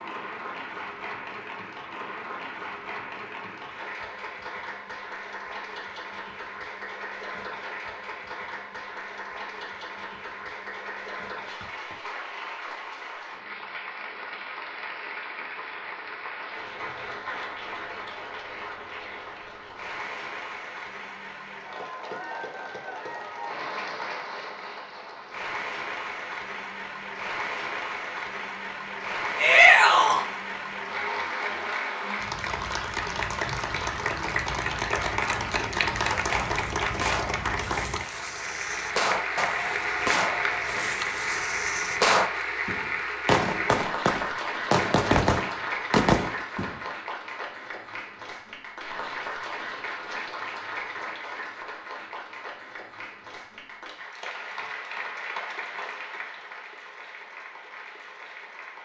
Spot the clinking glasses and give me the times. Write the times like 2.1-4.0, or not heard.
not heard.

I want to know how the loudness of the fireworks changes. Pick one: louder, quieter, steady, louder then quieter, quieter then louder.
louder.